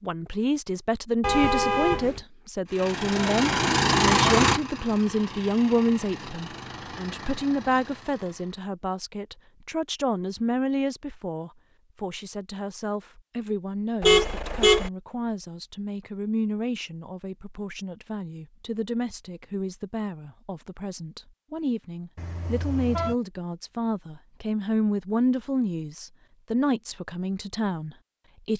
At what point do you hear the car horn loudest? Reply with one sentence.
The loudest moment of the car horn is at 14 seconds.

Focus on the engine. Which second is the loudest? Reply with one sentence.
The loudest moment of the engine is at 4 seconds.